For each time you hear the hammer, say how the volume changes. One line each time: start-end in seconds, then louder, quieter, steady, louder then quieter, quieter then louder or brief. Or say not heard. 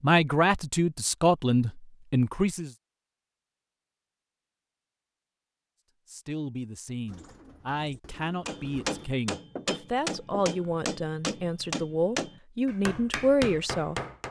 8.4-14.2 steady.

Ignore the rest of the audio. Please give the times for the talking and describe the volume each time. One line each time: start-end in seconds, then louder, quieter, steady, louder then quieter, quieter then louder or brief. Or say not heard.
0.0-2.7 brief
6.0-13.9 louder.